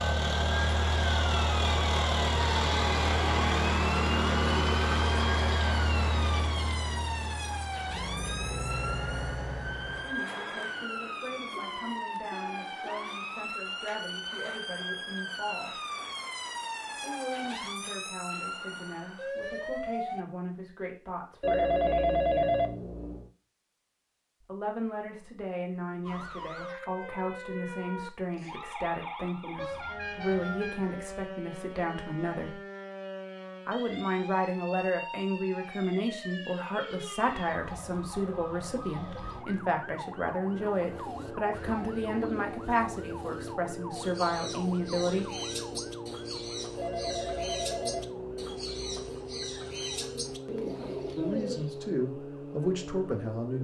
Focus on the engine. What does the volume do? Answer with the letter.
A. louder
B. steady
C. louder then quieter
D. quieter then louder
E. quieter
E.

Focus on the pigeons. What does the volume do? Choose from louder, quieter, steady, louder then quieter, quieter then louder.
louder.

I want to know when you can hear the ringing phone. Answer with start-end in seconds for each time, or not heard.
21.4-23.3, 46.8-49.0.